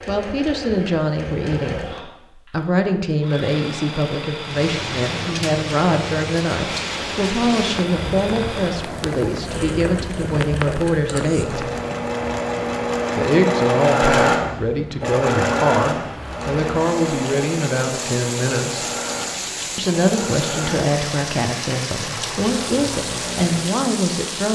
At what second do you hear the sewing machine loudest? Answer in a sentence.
The loudest moment of the sewing machine is at 14 seconds.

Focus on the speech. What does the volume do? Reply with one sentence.
The loudness of the speech stays about the same.